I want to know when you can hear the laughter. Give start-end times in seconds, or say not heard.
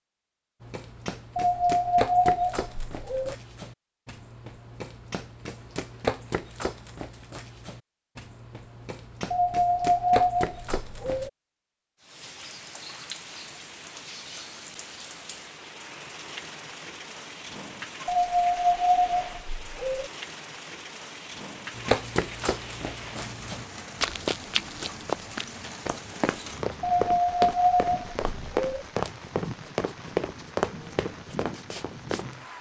not heard.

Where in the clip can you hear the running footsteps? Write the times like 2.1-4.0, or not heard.
0.6-11.3, 21.8-32.4.